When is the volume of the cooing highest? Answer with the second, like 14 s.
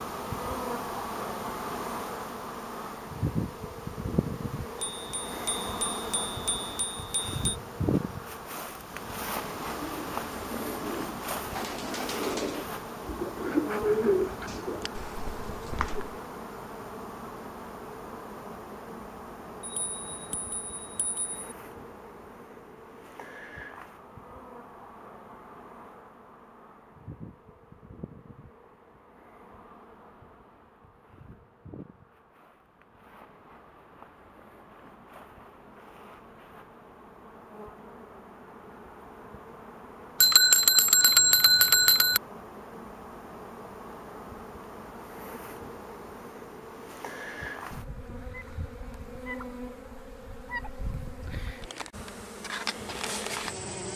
14 s.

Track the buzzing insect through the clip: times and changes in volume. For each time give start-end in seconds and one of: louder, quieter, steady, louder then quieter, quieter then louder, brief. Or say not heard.
0.0-53.9 quieter then louder.